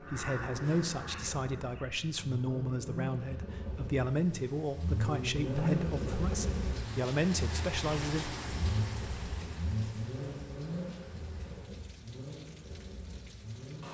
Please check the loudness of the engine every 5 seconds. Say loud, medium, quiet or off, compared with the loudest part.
medium, loud, medium.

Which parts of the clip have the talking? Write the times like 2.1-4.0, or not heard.
0.0-8.2.